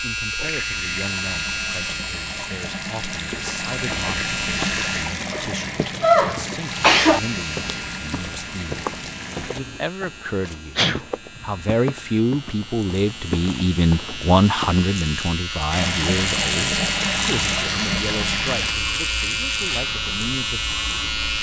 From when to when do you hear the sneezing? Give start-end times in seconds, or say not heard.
5.3-7.2, 10.8-11.5.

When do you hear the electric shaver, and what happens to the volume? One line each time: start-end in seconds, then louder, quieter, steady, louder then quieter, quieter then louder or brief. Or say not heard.
0.0-5.2 quieter then louder
6.5-21.3 quieter then louder.